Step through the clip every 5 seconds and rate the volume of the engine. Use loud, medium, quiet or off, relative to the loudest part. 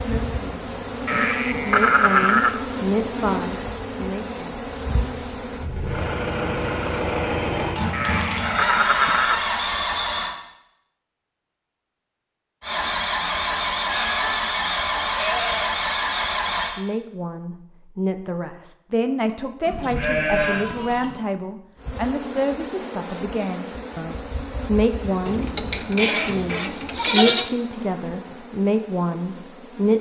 quiet, loud, loud, loud, off, off.